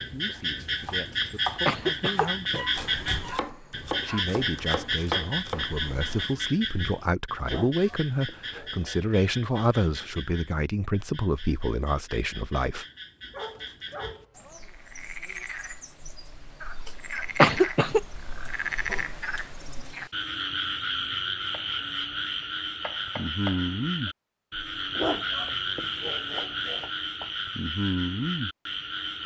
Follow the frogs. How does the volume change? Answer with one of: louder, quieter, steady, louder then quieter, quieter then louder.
quieter then louder.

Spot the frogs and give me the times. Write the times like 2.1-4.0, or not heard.
0.0-29.2.